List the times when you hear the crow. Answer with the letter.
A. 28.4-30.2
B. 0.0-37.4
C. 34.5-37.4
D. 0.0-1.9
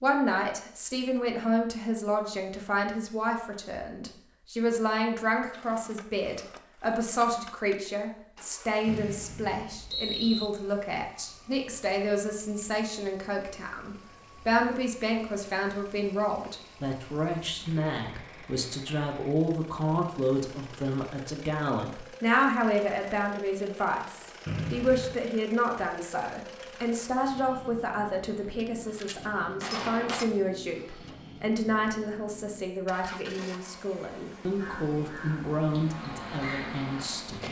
C.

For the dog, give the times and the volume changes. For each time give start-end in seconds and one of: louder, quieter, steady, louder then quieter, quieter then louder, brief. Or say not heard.
not heard.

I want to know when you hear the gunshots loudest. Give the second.
30 s.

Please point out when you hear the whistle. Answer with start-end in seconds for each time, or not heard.
8.8-10.5, 24.4-25.2.